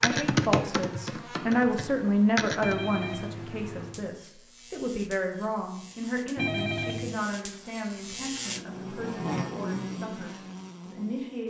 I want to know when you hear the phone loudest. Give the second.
7 s.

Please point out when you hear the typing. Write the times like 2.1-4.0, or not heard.
0.0-2.8.